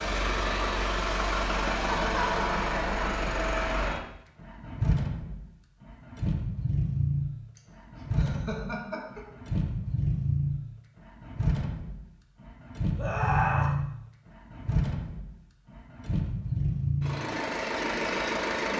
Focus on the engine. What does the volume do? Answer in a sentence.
The volume of the engine stays about the same.